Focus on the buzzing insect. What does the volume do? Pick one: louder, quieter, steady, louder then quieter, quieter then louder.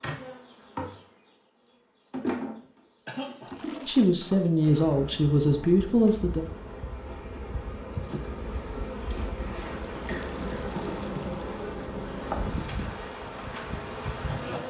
quieter then louder.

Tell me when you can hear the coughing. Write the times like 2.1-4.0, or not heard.
3.0-3.5, 10.1-10.7.